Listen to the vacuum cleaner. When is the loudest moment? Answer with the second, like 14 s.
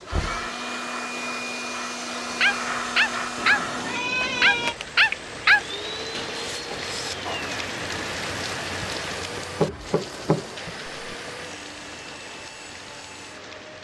3 s.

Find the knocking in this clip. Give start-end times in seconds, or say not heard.
0.1-0.5, 9.3-11.2.